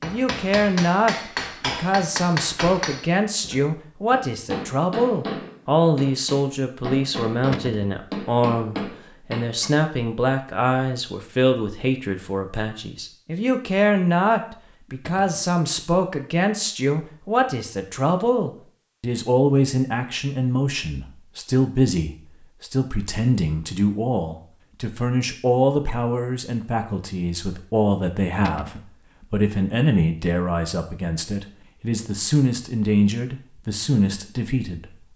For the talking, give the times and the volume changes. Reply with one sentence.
You can hear the talking from 0.0 to 35.1 s, at a steady volume.